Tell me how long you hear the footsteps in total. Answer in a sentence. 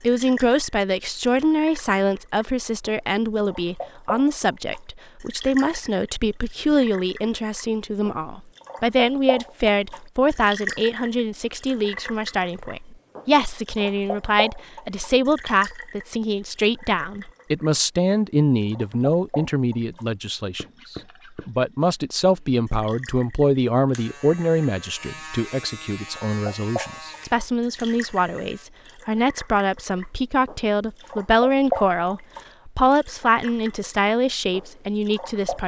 You can't hear the footsteps here.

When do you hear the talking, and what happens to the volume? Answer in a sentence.
You can hear the talking from 0.0 to 35.6 s, at a steady volume.